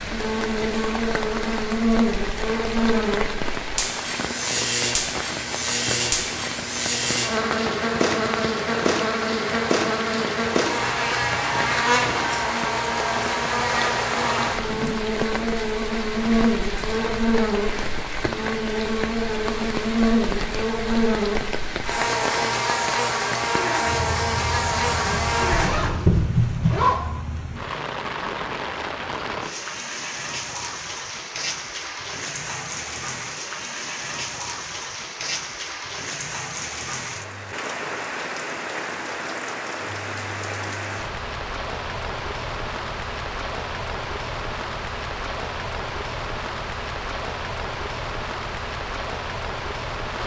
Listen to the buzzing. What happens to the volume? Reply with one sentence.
The volume of the buzzing stays about the same.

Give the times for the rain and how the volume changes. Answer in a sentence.
The rain can be heard from 0.0 to 50.2 s, at a steady volume.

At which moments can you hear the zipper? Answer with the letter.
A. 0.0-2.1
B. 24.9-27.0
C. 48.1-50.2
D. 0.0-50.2
B.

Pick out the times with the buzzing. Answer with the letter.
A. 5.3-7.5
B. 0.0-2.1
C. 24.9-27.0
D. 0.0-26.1
D.